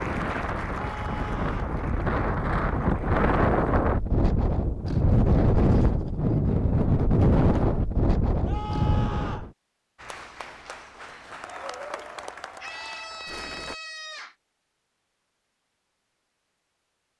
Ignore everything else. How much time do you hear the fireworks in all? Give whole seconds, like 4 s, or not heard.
not heard.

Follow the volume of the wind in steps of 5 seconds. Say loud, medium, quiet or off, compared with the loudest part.
loud, loud, off, off.